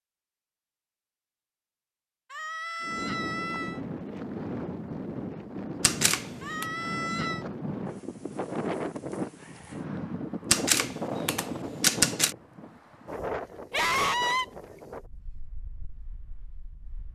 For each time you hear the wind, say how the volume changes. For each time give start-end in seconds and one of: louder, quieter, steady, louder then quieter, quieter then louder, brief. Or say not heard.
2.8-17.1 quieter.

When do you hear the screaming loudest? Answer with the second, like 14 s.
14 s.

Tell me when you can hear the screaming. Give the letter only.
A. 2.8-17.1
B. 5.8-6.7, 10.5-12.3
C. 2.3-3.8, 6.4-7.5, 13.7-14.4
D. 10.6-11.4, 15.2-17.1
C.